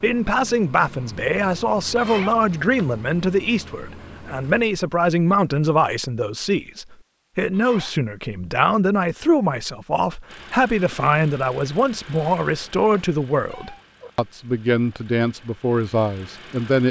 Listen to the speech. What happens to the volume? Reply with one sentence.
The loudness of the speech stays about the same.